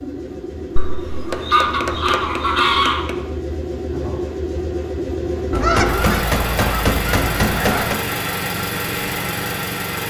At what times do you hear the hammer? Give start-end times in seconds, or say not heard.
1.3-3.1, 5.5-8.0.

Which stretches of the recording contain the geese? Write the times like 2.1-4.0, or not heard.
0.8-3.1, 5.5-8.0.